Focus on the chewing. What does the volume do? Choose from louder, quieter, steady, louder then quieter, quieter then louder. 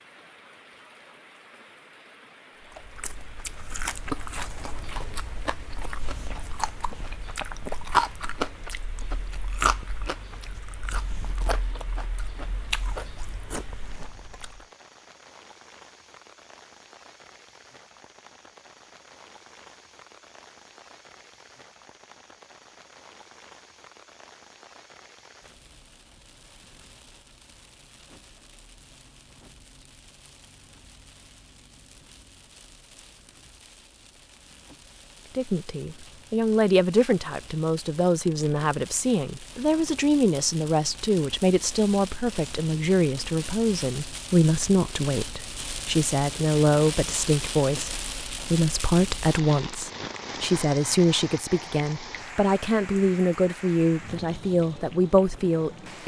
louder then quieter.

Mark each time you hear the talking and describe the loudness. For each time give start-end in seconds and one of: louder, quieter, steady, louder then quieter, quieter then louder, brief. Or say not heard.
35.4-56.0 steady.